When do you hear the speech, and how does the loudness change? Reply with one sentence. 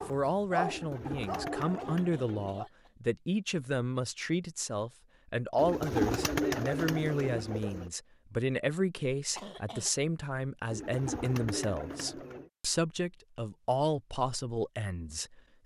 You can hear the speech from 0.1 to 15.6 s, at a steady volume.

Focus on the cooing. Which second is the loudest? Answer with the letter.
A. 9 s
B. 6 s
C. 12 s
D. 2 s
B.